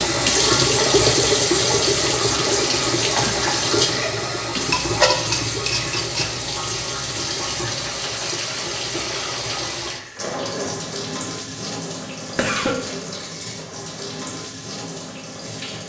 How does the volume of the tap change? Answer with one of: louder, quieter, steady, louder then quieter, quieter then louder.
quieter.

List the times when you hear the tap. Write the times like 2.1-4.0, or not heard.
0.0-15.8.